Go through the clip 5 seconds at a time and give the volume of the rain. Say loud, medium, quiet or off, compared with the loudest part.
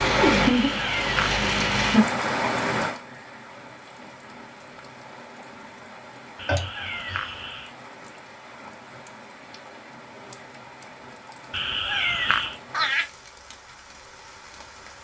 loud, quiet, quiet.